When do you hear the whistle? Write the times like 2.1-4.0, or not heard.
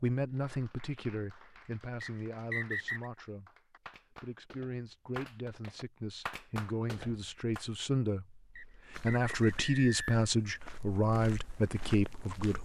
2.0-3.1, 8.6-10.2.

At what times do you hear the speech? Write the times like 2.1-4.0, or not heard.
0.0-12.6.